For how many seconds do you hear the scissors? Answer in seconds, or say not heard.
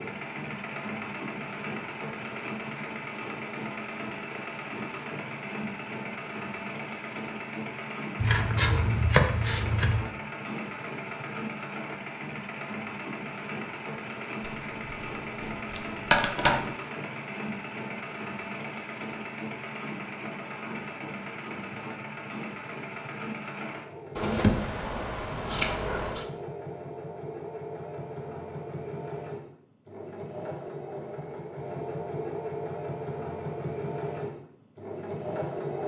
6 s.